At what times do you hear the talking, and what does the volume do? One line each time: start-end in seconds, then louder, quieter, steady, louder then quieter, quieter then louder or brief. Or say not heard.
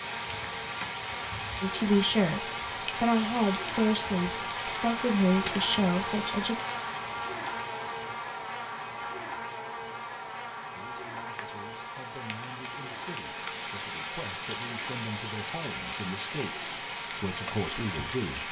1.6-6.6 steady
10.8-18.4 louder.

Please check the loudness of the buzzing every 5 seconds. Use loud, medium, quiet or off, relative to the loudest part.
loud, loud, medium, medium.